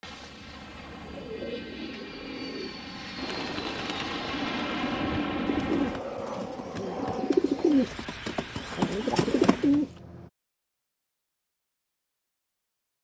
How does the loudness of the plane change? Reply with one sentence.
The volume of the plane goes up, then down.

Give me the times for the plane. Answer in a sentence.
The plane can be heard from 0.0 to 10.3 s.